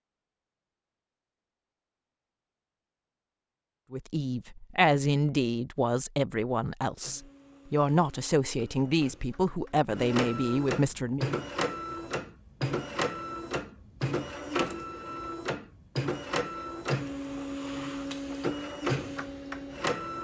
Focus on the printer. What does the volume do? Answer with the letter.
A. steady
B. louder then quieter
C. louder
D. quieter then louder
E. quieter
C.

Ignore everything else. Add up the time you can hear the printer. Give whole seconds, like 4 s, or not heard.
13 s.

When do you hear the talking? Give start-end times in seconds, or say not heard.
3.9-11.2.